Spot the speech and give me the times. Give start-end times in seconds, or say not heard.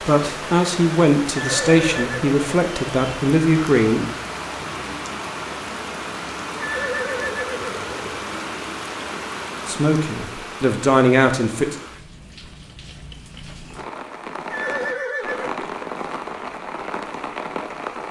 0.1-4.1, 9.7-11.8.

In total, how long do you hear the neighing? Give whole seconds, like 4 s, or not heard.
4 s.